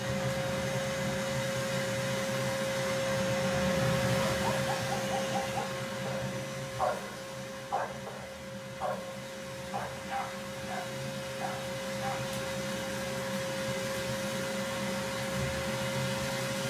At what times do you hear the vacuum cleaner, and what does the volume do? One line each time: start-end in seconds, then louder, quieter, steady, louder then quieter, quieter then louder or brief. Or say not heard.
0.0-16.6 quieter then louder.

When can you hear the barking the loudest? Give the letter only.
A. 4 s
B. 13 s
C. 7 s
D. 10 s
C.